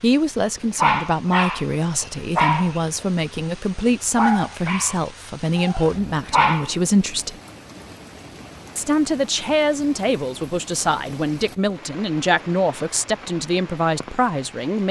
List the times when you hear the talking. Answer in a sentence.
You can hear the talking from 0.0 to 7.3 s and from 8.8 to 14.8 s.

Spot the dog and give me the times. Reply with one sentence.
You can hear the dog from 0.7 to 6.8 s.